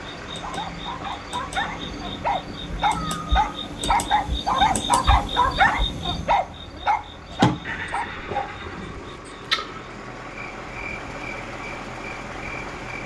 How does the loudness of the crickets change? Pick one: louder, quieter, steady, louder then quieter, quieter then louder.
louder then quieter.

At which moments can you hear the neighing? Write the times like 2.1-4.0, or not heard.
3.0-3.4, 7.6-9.2.